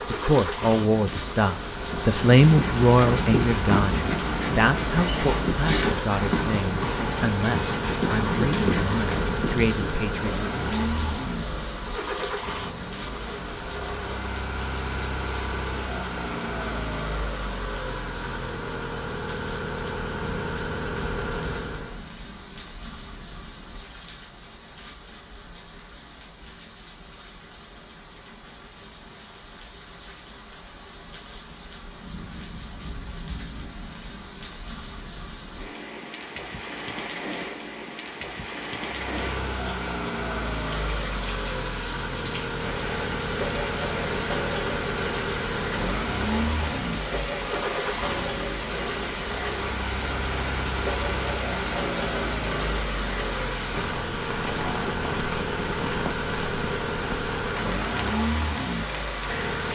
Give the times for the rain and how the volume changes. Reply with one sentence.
The rain can be heard from 0.0 to 59.7 s, getting quieter then louder.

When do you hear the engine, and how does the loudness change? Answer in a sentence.
The engine can be heard from 0.0 to 22.1 s, at a steady volume; and from 38.9 to 59.7 s, at a steady volume.